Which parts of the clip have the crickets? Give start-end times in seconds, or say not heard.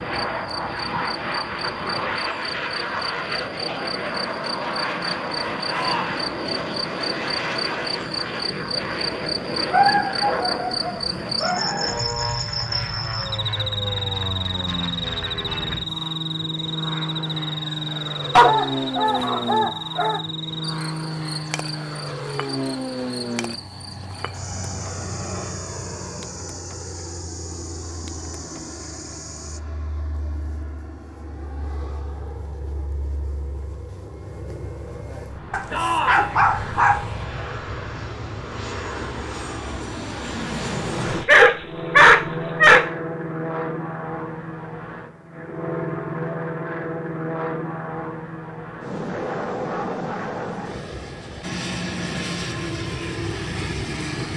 0.0-29.6.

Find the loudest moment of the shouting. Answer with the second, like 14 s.
36 s.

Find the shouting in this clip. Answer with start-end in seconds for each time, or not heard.
5.7-6.2, 35.7-36.3.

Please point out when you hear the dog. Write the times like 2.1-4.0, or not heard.
9.7-11.9, 18.4-20.2, 35.5-37.0, 41.1-42.9.